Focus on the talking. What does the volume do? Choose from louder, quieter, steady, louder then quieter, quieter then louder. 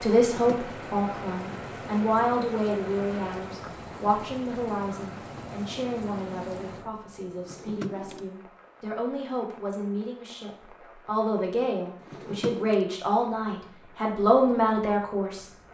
quieter then louder.